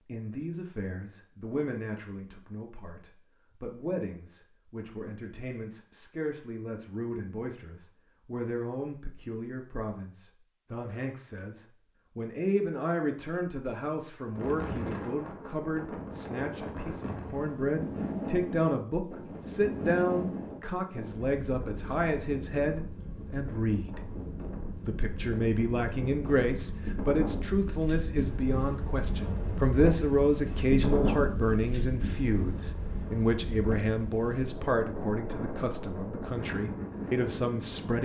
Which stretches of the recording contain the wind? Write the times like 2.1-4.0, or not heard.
14.3-37.9.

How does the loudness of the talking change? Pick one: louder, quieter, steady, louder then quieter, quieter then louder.
louder.